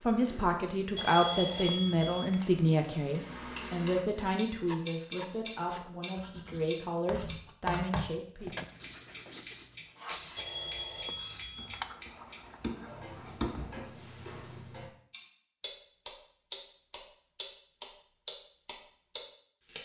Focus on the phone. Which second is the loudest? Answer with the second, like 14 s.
1 s.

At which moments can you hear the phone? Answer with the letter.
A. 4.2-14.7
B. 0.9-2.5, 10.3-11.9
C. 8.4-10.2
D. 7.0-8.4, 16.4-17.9
B.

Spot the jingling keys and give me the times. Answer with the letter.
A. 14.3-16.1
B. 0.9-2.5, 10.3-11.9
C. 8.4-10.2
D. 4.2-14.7
C.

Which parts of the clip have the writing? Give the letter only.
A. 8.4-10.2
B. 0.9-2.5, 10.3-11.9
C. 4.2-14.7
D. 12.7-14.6
C.